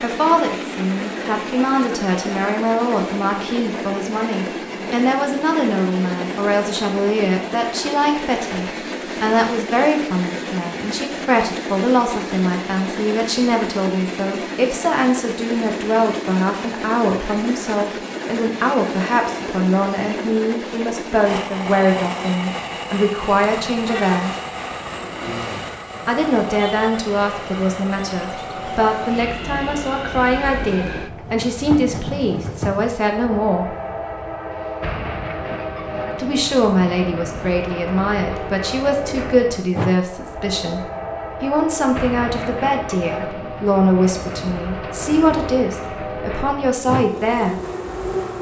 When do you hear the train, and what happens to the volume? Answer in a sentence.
The train can be heard from 0.0 to 48.3 s, at a steady volume.